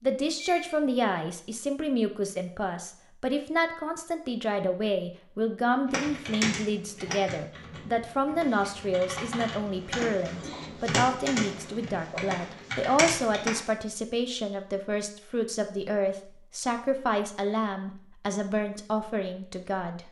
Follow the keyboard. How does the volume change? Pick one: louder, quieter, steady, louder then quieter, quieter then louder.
quieter then louder.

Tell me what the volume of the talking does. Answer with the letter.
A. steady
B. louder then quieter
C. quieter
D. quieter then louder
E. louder
A.